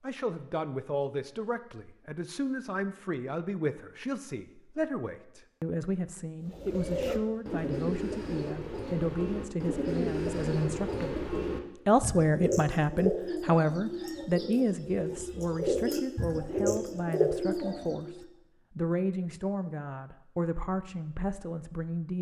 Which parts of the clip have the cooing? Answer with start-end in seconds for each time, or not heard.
6.4-18.2.